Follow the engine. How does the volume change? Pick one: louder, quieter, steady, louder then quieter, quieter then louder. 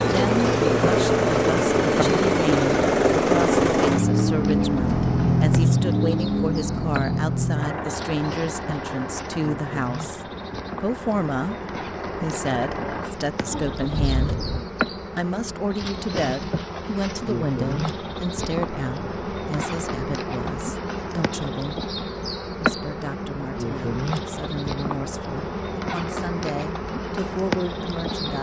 quieter.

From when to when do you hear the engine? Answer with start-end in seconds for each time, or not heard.
0.0-14.7.